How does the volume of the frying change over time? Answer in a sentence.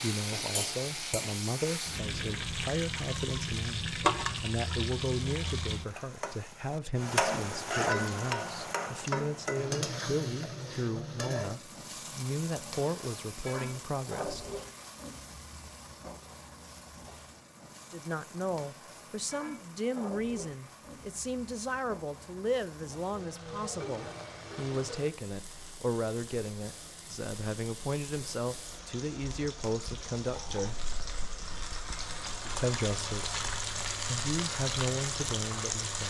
The volume of the frying goes down, then up.